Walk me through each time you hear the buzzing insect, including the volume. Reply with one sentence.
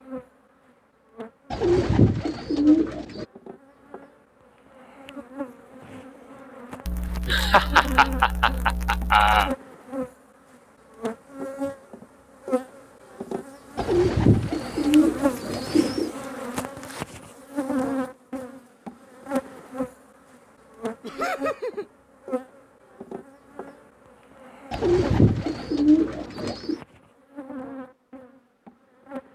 The buzzing insect can be heard from 0.0 to 29.2 s, getting louder then quieter.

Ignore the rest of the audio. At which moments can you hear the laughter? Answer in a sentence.
The laughter can be heard from 6.8 to 9.5 s and from 21.0 to 21.9 s.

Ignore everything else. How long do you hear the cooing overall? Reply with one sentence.
You can hear the cooing for 6 seconds altogether.